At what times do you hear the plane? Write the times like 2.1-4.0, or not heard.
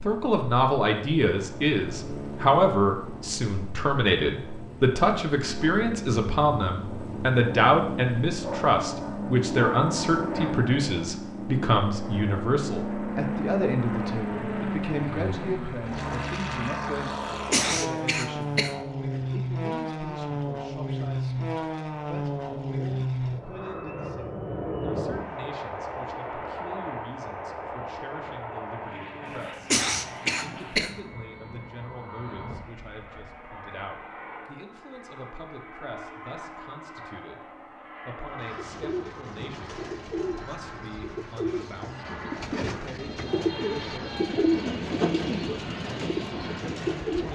0.0-47.3.